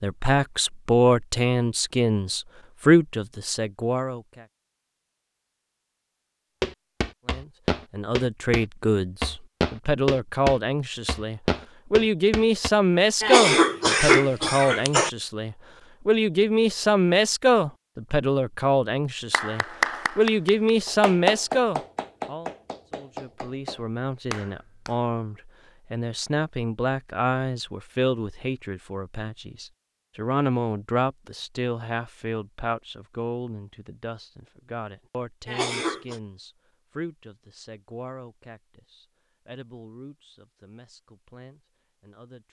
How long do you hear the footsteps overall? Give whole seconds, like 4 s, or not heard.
6 s.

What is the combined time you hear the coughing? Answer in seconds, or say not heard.
3 s.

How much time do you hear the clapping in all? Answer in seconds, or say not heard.
6 s.